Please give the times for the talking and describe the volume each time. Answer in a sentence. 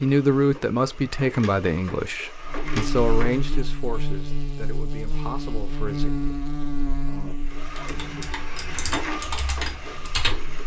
The talking can be heard from 0.0 to 6.1 s, getting quieter.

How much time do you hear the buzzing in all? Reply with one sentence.
You can hear the buzzing for 8 seconds altogether.